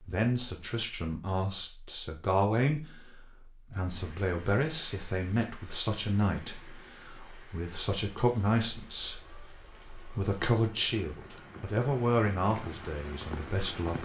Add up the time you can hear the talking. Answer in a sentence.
The talking can be heard for 14 seconds in total.